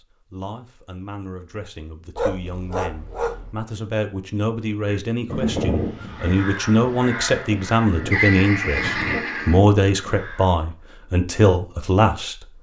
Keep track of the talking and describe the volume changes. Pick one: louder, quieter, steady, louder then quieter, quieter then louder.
louder.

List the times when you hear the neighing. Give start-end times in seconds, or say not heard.
8.1-9.6.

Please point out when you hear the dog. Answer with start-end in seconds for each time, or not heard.
2.1-3.6.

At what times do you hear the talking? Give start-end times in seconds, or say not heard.
0.0-12.4.